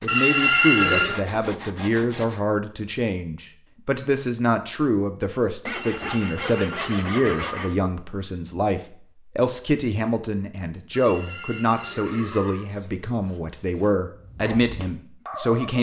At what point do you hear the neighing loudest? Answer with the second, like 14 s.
1 s.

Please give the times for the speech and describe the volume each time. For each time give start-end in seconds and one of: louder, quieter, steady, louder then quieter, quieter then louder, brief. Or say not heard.
0.0-15.7 steady.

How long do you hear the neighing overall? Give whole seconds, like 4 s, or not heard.
5 s.